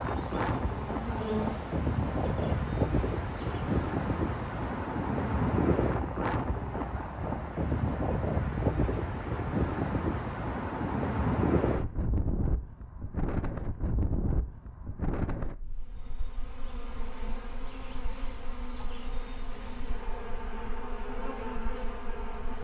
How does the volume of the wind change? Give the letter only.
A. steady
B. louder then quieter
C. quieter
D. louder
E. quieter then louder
C.